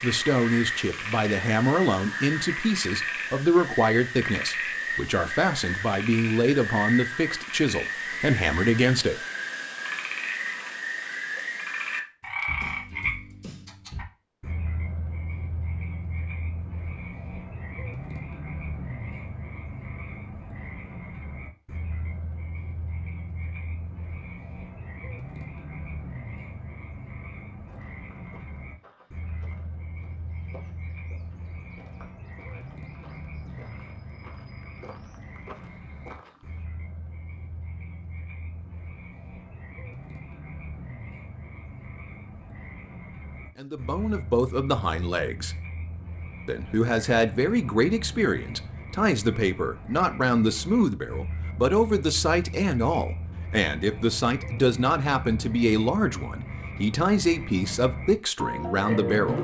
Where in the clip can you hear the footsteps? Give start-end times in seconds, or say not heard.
27.6-36.6.